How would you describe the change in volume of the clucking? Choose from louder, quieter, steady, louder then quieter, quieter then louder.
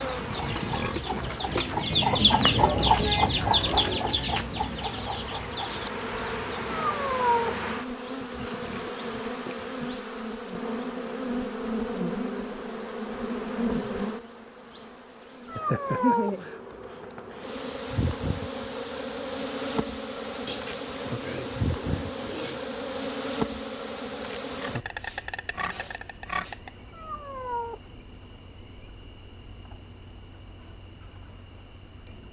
louder then quieter.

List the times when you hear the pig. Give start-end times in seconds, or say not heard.
0.3-2.0, 8.2-9.9, 20.4-22.6, 24.6-26.6.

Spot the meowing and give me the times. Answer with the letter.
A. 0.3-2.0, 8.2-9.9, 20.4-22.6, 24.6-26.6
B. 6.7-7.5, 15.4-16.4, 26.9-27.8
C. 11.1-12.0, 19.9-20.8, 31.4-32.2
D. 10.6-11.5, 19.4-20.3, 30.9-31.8
B.